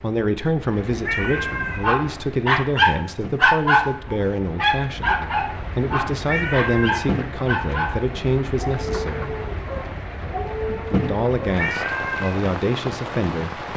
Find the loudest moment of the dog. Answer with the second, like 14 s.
4 s.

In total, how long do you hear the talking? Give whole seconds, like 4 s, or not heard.
12 s.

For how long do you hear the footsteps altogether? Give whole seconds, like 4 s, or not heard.
not heard.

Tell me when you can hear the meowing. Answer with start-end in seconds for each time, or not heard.
1.1-1.8, 6.2-7.0, 11.6-12.3.